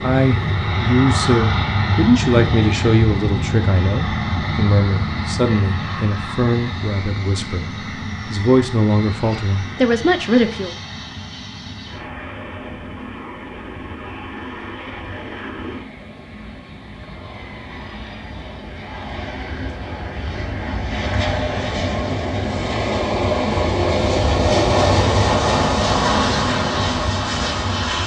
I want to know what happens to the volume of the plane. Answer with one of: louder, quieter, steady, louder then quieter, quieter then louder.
quieter then louder.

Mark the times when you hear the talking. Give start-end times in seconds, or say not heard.
0.0-7.7, 8.2-10.8.